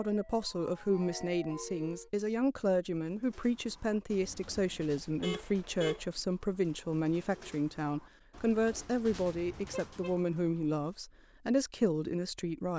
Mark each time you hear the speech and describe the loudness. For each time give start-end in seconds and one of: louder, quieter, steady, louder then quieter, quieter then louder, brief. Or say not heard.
0.0-12.7 steady.